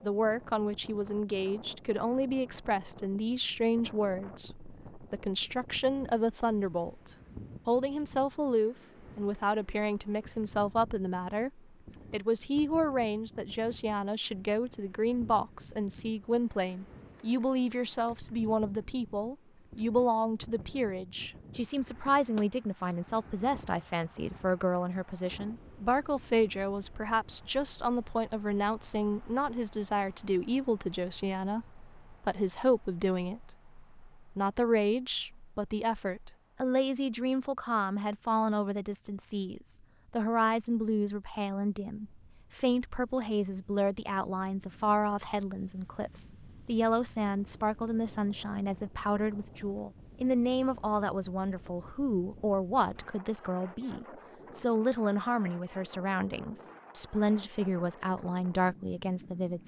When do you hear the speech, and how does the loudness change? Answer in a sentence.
You can hear the speech from 0.0 to 59.6 s, at a steady volume.